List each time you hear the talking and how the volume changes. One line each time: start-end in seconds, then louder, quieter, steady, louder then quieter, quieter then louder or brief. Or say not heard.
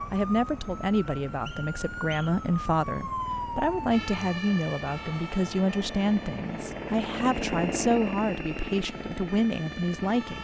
0.1-10.3 steady.